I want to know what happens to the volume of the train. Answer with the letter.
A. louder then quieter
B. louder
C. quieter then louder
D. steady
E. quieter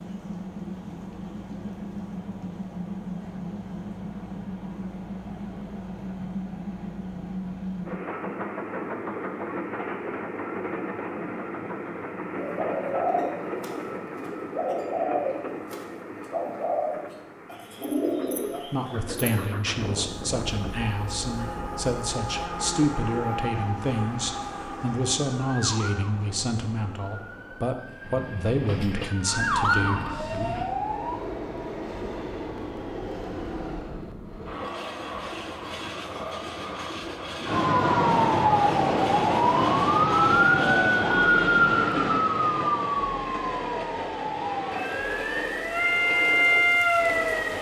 D.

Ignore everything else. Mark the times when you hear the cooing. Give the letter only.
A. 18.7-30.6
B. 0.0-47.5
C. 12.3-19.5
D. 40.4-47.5
C.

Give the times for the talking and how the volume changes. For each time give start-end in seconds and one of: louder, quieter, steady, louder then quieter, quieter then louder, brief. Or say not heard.
18.7-30.6 steady.